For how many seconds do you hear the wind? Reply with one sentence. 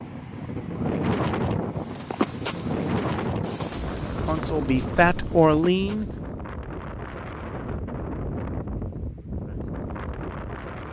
The wind can be heard for 11 seconds in total.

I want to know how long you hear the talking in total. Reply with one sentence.
The talking can be heard for 2 seconds in total.